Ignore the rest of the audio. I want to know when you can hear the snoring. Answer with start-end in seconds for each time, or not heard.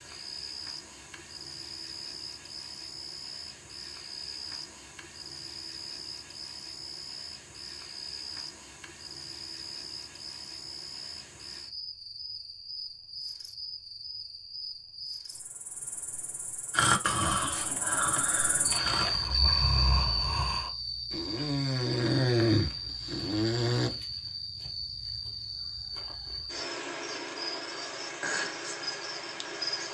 16.7-23.9.